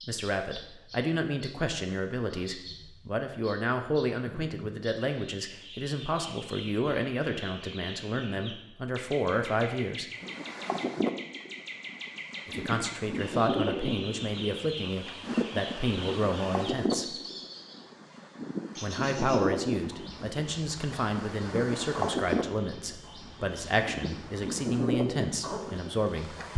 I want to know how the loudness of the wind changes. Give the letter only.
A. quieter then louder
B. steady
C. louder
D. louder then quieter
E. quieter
B.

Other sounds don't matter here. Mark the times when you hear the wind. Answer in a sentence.
You can hear the wind from 10.2 to 26.5 s.